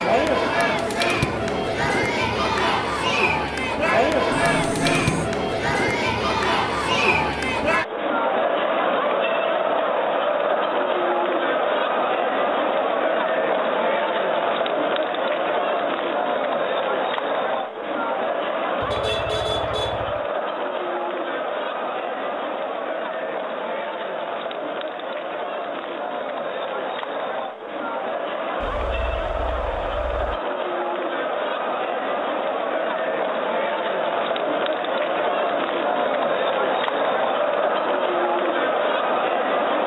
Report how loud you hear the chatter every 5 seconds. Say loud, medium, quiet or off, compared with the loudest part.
loud, loud, loud, loud, medium, medium, loud, loud.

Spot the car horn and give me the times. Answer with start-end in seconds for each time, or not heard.
4.3-5.3, 18.8-20.2, 28.6-30.4.